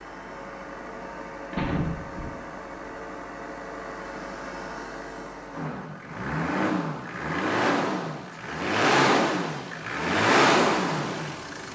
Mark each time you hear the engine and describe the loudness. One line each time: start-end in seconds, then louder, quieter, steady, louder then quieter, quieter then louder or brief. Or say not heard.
0.0-11.6 louder.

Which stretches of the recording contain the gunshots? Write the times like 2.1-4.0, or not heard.
1.5-2.9.